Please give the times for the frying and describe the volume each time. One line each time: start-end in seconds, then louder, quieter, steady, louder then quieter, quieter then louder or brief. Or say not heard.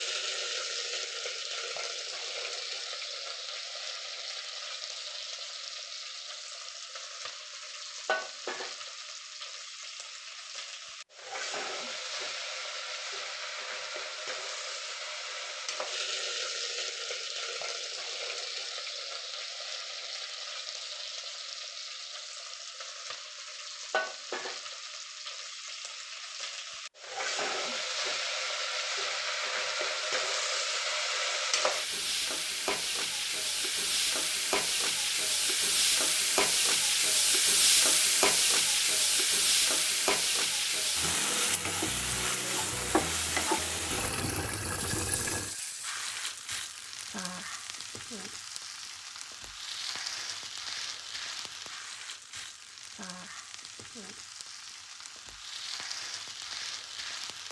0.0-57.4 louder then quieter.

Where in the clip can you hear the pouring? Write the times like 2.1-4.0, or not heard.
43.9-45.5.